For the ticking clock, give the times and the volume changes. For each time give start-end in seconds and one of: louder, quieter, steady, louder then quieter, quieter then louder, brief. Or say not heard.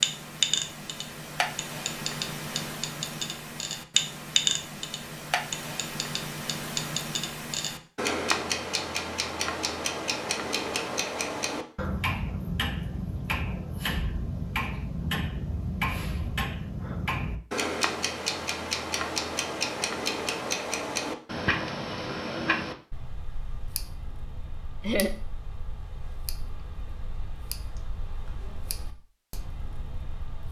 0.0-30.4 quieter.